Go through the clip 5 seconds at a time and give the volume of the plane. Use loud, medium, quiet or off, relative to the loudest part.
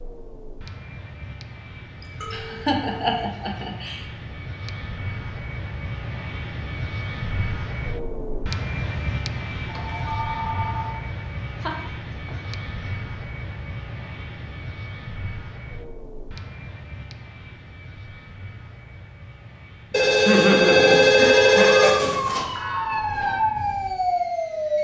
medium, loud, loud, medium, quiet.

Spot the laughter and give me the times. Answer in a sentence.
You can hear the laughter from 2.3 to 4.0 s, from 11.6 to 12.9 s and from 19.9 to 22.3 s.